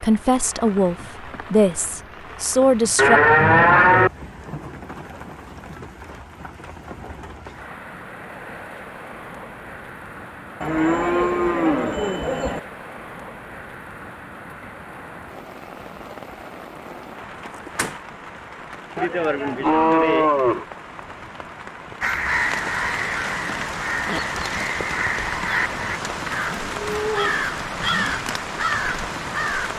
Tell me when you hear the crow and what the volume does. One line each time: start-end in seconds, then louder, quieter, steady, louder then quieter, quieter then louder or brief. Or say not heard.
22.0-29.7 steady.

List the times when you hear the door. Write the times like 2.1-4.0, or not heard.
17.4-18.0.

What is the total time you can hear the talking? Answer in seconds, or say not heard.
3 s.